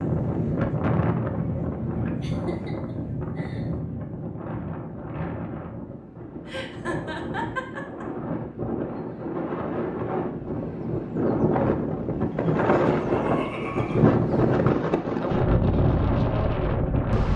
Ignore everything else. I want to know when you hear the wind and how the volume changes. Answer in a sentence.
The wind can be heard from 0.0 to 17.3 s, getting quieter then louder.